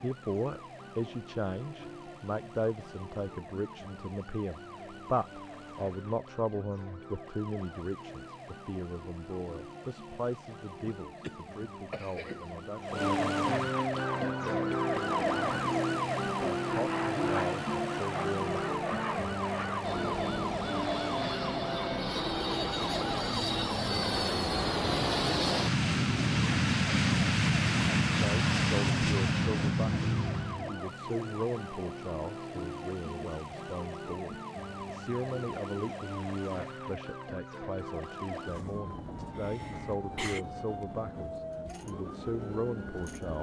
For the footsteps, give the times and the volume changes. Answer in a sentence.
The footsteps can't be heard in this clip.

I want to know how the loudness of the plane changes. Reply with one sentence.
The loudness of the plane goes up.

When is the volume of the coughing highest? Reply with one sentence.
The loudest moment of the coughing is at 40 seconds.